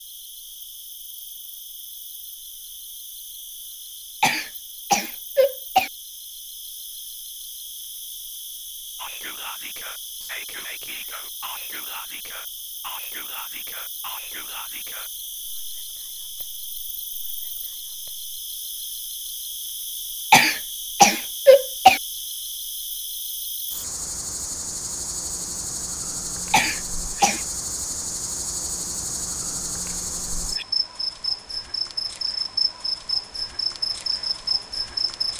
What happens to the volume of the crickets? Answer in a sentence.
The volume of the crickets goes up.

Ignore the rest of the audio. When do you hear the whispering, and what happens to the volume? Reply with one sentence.
You can hear the whispering from 8.9 to 18.3 s, getting quieter.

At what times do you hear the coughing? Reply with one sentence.
You can hear the coughing from 4.2 to 5.9 s, from 20.3 to 22.0 s and from 26.5 to 27.4 s.